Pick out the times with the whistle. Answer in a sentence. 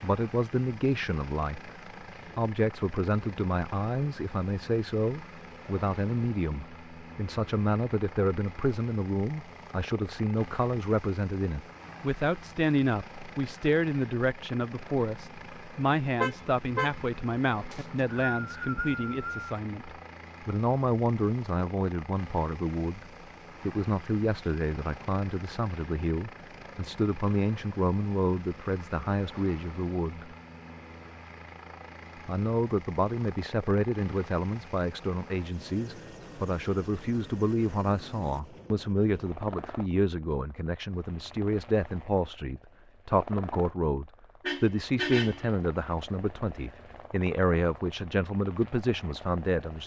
The whistle can be heard from 17.7 to 19.4 s.